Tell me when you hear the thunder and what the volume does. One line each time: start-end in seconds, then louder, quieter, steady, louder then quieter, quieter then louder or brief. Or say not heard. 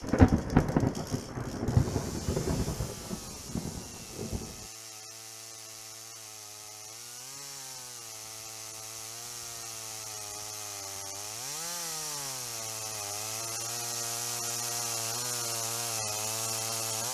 0.0-4.7 quieter.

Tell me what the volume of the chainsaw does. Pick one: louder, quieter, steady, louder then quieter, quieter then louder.
louder.